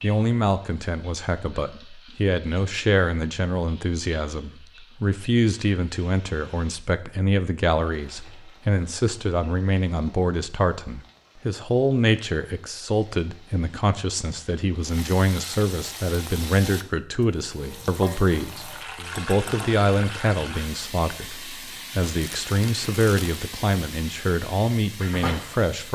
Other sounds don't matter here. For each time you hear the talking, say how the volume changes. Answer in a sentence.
You can hear the talking from 0.0 to 25.8 s, at a steady volume.